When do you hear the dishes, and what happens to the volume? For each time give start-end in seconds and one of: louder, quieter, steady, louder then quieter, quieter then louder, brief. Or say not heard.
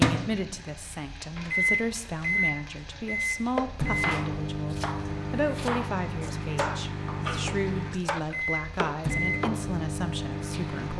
not heard.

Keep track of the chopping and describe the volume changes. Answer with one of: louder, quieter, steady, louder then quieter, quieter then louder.
steady.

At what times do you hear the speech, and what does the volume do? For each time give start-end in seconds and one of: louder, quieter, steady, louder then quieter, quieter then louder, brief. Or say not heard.
0.1-10.9 steady.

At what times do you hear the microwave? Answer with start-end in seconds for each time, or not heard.
0.0-10.9.